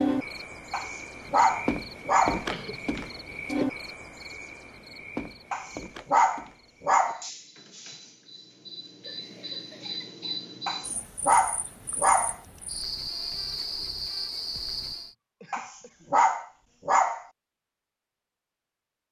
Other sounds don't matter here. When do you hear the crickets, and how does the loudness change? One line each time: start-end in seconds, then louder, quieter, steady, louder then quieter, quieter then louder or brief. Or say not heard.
0.0-15.1 quieter then louder.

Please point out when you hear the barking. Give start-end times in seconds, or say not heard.
0.7-2.5, 5.5-7.2, 10.7-12.3, 15.5-17.2.